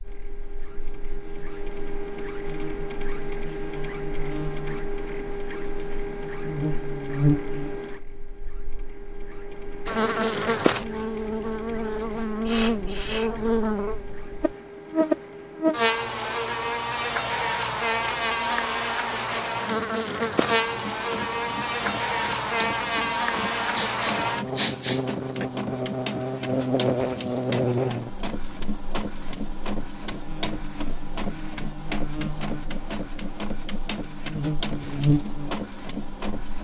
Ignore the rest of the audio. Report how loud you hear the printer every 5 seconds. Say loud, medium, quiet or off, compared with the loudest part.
loud, loud, medium, medium, loud, loud, loud, loud.